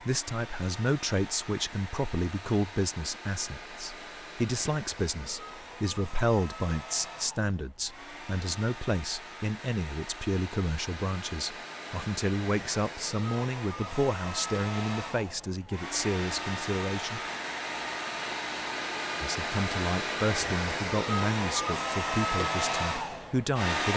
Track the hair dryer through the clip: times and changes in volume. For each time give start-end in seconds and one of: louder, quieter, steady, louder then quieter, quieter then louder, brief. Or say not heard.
0.0-23.9 louder.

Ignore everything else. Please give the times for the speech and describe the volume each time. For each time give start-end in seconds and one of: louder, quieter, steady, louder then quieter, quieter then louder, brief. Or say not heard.
0.0-17.2 steady
19.2-23.9 steady.